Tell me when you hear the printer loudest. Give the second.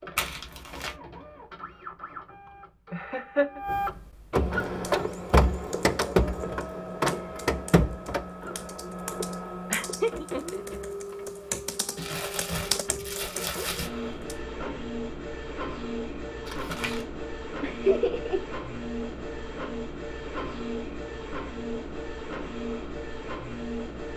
6 s.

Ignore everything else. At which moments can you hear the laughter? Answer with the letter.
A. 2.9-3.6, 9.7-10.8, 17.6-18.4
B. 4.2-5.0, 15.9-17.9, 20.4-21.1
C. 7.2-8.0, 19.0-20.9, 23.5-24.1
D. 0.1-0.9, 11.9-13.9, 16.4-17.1
A.